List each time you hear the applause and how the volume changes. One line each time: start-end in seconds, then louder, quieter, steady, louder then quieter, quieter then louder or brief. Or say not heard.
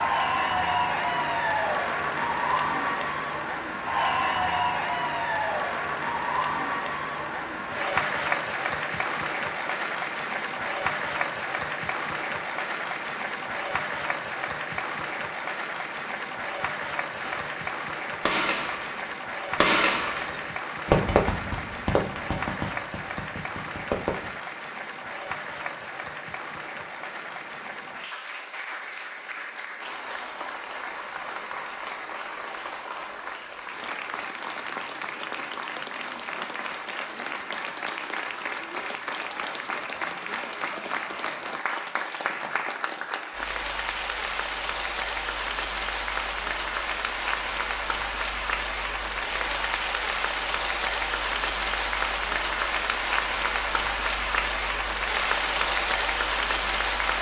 0.0-57.1 quieter then louder.